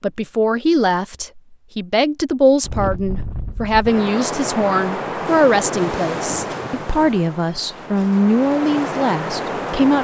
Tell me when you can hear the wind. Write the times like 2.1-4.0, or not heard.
2.6-9.9.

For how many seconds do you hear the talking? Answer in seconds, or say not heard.
10 s.